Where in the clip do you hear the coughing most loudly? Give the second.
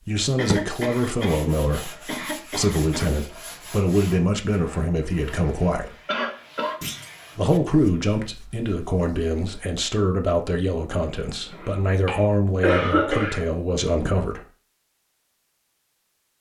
13 s.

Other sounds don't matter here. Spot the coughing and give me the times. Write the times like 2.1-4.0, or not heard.
0.3-3.1, 6.0-6.8, 11.5-13.4.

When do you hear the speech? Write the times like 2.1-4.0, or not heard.
0.1-6.0, 7.3-14.4.